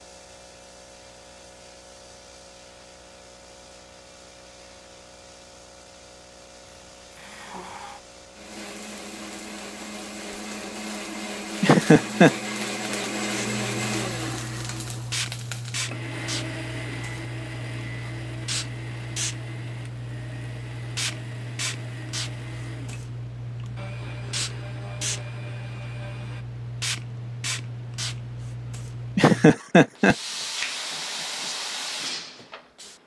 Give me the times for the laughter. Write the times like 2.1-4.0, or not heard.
11.6-12.3, 29.1-30.1.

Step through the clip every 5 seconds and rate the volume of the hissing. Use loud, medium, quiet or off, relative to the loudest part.
quiet, quiet, medium, loud, loud, loud, loud.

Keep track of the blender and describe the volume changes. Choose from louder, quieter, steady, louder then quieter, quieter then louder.
louder then quieter.